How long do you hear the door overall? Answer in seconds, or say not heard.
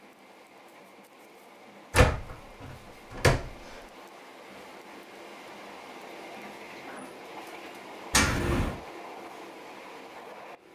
2 s.